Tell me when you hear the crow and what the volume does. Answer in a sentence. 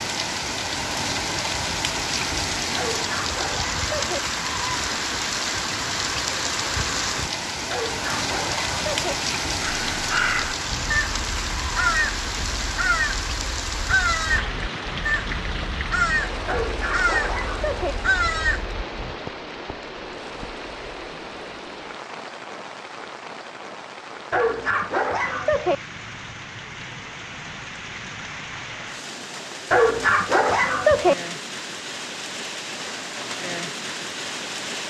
You can hear the crow from 9.6 to 19.1 s, at a steady volume.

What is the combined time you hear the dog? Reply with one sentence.
You can hear the dog for 7 seconds altogether.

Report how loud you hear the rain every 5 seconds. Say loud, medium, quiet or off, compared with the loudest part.
loud, loud, loud, medium, medium, medium, medium.